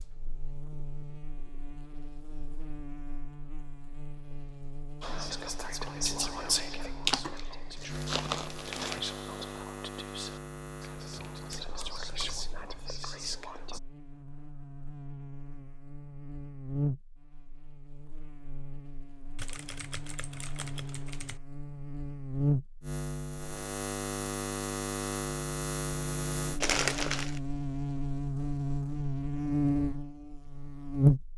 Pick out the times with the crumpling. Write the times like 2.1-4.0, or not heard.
7.0-9.0, 26.6-27.4.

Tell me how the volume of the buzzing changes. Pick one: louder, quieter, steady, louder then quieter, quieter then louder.
louder.